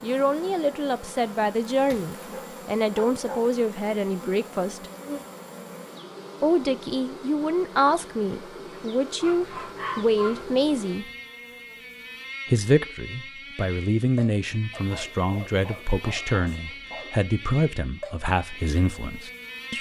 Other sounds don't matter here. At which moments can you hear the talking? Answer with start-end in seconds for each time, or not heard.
0.0-4.8, 6.4-11.1, 12.4-19.7.